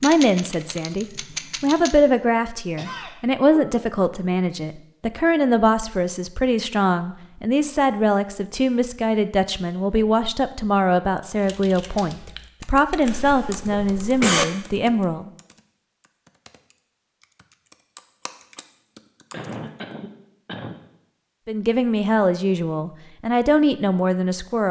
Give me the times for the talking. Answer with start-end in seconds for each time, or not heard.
0.0-15.3, 21.4-24.6.